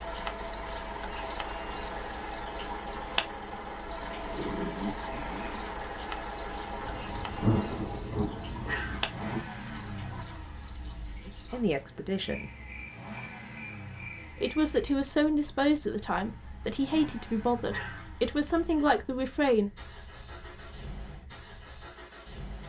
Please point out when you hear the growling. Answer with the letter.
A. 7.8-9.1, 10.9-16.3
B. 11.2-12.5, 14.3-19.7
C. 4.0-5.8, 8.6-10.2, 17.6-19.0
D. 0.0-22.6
C.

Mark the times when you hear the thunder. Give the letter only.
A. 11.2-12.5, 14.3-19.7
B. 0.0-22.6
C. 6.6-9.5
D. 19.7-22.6
C.